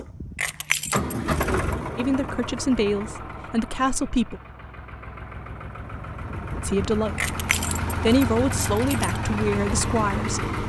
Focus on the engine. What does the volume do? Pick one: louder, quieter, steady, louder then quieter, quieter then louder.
quieter then louder.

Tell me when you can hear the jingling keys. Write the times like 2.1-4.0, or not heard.
0.3-1.8, 7.2-9.2.